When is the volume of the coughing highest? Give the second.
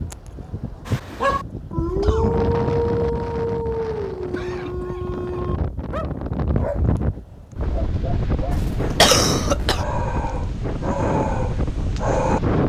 9 s.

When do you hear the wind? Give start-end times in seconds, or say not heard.
0.0-12.6.